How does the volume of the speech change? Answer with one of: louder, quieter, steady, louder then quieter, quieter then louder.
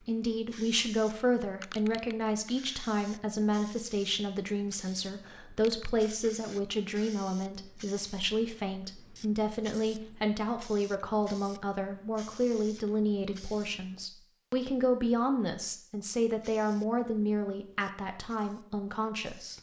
steady.